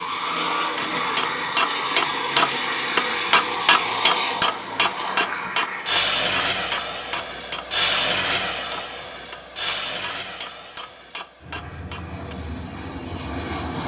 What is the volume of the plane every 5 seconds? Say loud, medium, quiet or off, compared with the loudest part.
loud, loud, medium.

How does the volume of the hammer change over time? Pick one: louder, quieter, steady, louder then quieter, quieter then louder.
quieter.